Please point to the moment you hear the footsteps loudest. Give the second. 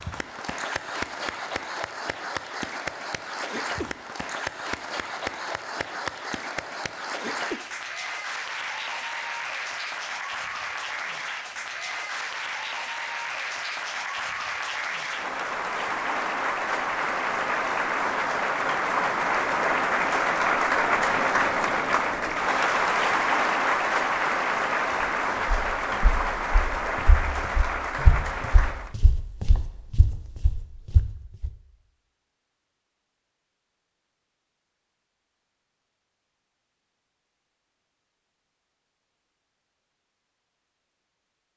28 s.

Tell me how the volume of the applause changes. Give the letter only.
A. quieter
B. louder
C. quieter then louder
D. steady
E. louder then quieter
B.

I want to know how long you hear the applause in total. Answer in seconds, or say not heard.
29 s.